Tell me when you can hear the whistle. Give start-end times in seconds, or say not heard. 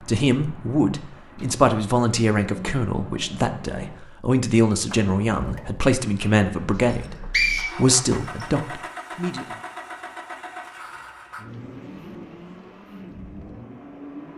6.8-8.4.